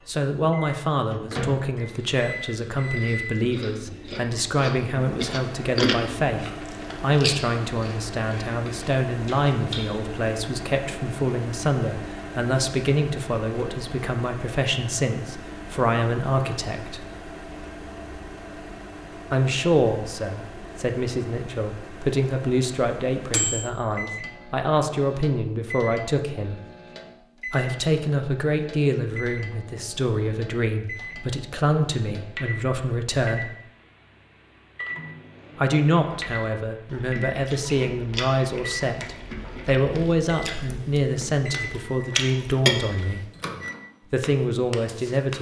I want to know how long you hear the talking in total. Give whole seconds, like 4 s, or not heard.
39 s.